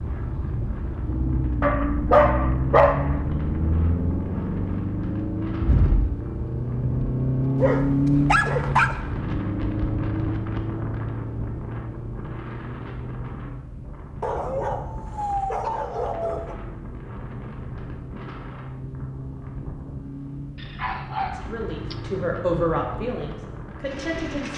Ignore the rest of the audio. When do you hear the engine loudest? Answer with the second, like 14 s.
8 s.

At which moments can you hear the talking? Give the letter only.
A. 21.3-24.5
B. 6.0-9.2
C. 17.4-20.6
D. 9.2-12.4
A.